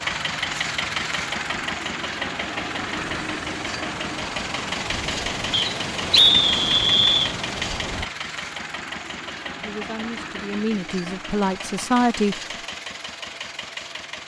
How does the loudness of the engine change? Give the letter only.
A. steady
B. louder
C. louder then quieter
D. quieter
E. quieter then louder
D.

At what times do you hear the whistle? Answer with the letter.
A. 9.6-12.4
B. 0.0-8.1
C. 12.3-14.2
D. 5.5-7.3
D.